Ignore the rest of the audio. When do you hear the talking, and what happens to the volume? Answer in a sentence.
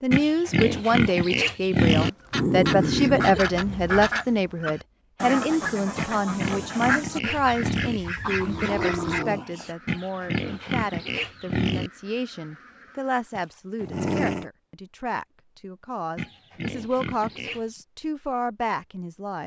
You can hear the talking from 0.0 to 19.4 s, getting quieter.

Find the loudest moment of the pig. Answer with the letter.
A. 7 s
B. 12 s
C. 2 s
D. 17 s
C.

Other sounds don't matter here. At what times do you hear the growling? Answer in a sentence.
You can hear the growling from 2.3 to 4.1 s, from 8.2 to 9.7 s and from 13.3 to 14.4 s.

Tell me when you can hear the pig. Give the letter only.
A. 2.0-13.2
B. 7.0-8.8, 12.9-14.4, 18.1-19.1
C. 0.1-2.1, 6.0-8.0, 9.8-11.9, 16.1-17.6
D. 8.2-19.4
C.